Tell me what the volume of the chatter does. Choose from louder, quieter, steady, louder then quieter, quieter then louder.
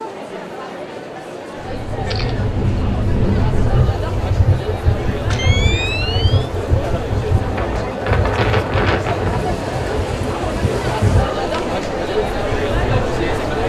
louder.